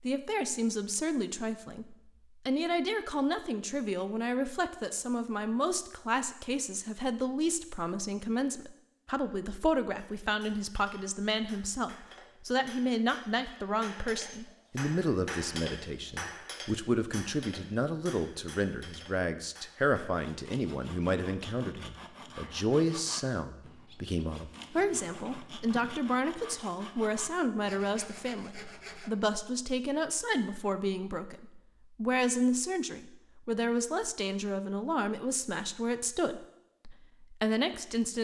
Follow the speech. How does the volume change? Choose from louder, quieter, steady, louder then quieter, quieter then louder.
steady.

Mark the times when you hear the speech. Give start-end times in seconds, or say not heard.
0.0-38.1.